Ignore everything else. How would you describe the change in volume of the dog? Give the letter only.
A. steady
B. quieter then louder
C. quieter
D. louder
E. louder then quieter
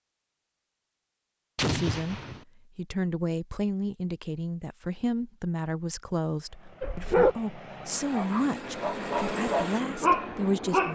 B.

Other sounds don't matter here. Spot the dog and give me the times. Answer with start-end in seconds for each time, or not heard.
6.8-10.8.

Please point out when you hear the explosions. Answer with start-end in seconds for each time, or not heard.
1.6-2.5.